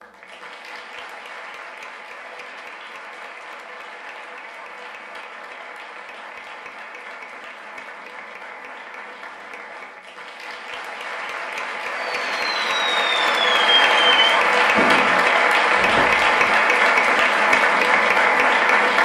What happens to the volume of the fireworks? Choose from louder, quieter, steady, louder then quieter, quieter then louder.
louder then quieter.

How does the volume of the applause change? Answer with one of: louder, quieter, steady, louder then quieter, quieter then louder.
louder.